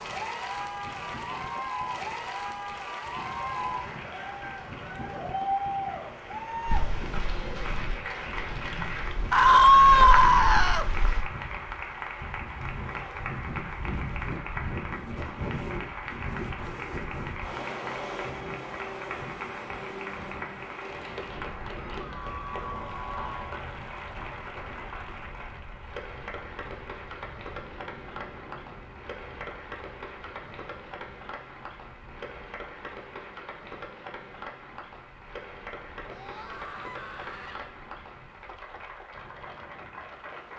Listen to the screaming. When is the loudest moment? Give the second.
10 s.